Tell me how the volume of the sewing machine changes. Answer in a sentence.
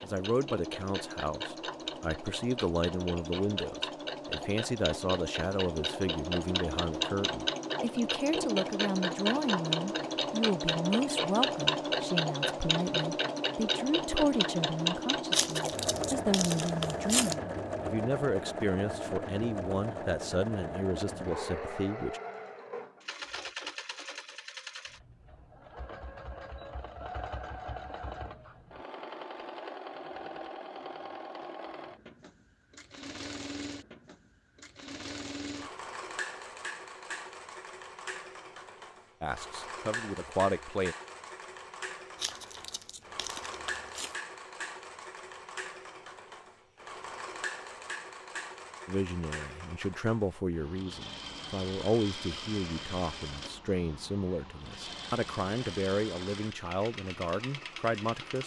The loudness of the sewing machine goes down.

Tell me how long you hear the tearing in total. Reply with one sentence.
You can hear the tearing for 4 seconds altogether.